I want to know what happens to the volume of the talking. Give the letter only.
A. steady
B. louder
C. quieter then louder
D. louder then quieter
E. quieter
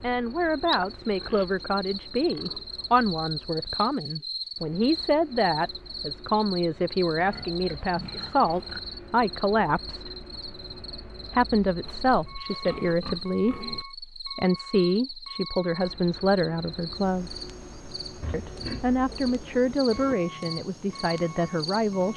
A.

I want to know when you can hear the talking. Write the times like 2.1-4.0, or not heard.
0.0-10.1, 11.3-17.3, 18.3-22.1.